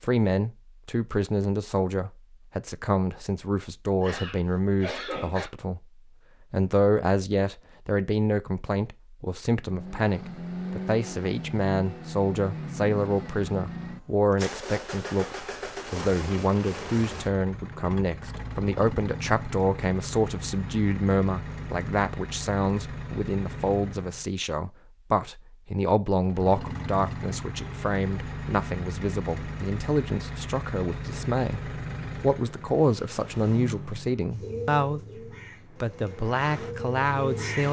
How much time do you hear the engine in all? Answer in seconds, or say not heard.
26 s.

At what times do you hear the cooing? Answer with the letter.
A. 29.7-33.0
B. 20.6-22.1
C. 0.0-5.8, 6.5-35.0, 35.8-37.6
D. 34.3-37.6
D.